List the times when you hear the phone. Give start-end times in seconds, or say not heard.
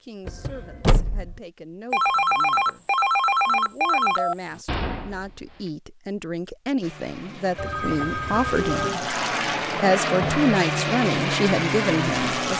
1.9-4.6, 7.5-9.0.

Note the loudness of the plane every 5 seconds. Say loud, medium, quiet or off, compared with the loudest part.
off, medium, loud.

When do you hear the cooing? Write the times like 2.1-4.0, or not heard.
not heard.